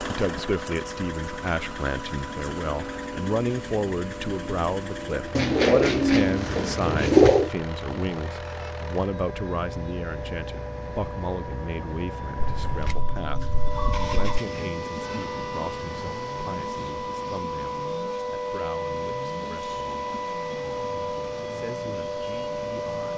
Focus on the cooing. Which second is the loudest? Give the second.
7 s.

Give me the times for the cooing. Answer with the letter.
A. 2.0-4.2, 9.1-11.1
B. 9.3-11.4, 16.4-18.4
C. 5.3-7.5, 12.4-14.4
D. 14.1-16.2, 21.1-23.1
C.